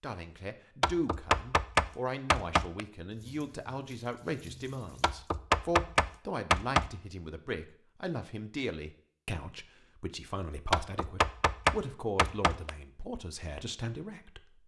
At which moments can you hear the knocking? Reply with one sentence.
You can hear the knocking from 0.8 to 2.8 s, from 5.0 to 6.9 s and from 10.7 to 12.7 s.